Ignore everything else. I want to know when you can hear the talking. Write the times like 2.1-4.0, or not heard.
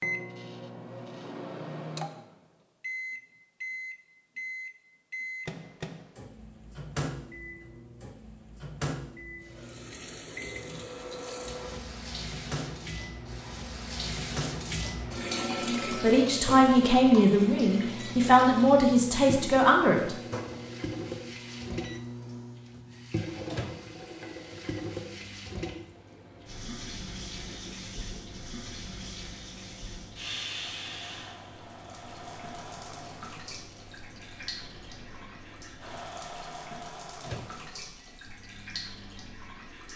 15.9-20.1.